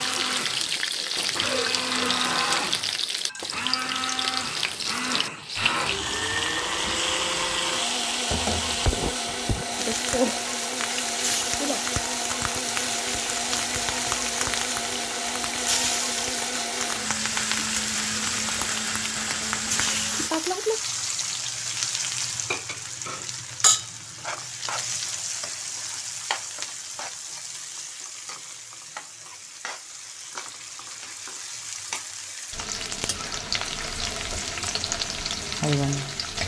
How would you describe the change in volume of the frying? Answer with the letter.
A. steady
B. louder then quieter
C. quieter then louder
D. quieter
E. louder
A.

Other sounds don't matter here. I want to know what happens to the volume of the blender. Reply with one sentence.
The loudness of the blender stays about the same.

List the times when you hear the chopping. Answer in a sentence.
You can't hear the chopping here.